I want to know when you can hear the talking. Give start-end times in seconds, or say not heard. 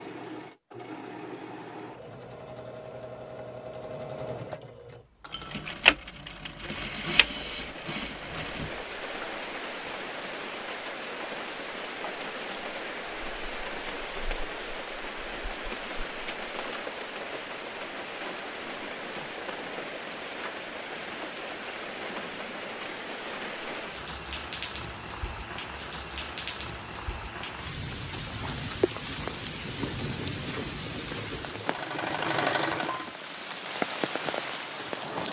not heard.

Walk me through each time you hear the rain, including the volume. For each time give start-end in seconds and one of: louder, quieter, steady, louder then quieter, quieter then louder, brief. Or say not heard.
6.8-35.2 steady.